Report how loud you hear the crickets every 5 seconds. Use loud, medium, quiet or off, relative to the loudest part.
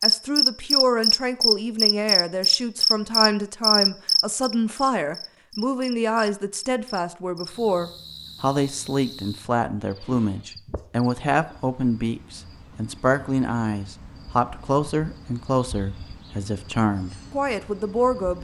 loud, quiet, quiet, quiet.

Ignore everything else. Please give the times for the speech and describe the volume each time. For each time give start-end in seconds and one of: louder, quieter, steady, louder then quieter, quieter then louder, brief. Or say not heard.
0.0-18.3 steady.